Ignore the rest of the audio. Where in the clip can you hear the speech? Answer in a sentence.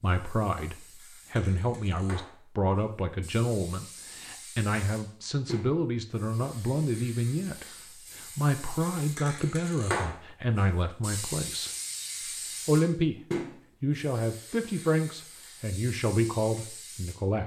The speech can be heard from 0.0 to 11.7 s, from 12.7 to 13.2 s and from 13.8 to 17.4 s.